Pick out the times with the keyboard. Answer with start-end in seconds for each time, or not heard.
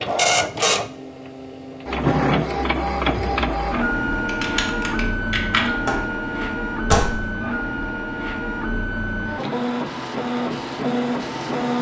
4.2-5.7.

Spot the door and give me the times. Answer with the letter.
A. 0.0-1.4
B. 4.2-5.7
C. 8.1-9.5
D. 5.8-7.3
D.